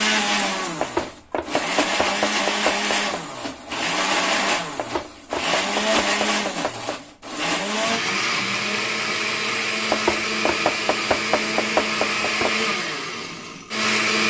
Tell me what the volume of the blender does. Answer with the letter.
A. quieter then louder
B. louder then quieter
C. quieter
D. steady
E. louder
D.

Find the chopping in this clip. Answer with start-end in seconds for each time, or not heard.
0.8-3.1, 4.8-7.0, 9.8-12.7.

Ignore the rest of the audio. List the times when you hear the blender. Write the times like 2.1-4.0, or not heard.
0.0-14.2.